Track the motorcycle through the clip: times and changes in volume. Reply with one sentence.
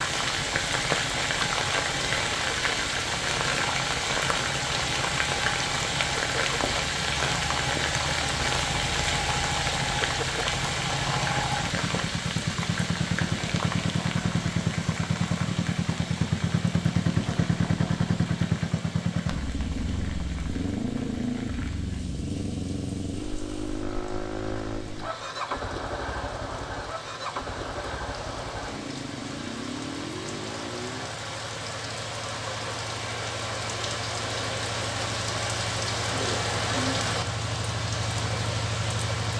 The motorcycle can be heard from 0.0 to 31.1 s, getting louder then quieter.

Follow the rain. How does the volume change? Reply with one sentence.
The loudness of the rain goes down, then up.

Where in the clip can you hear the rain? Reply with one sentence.
You can hear the rain from 0.0 to 39.3 s.